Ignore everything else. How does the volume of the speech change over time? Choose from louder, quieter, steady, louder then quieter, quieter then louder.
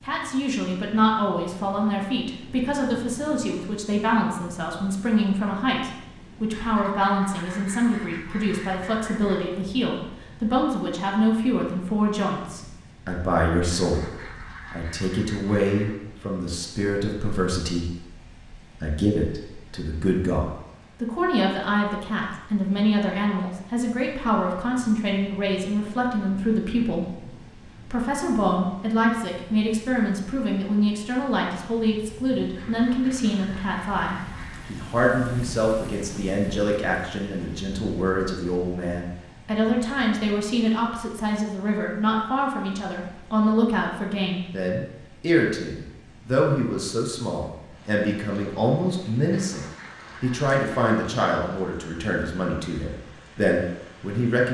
steady.